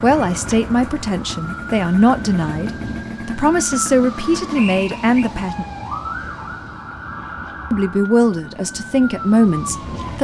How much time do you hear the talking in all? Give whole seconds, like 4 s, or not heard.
8 s.